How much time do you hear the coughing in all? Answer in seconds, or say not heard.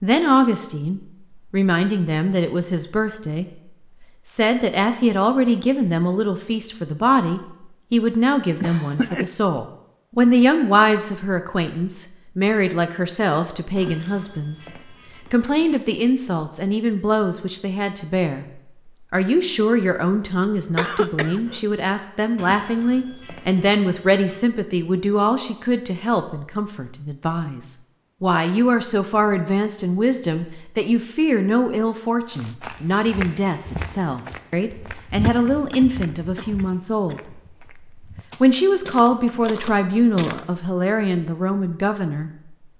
4 s.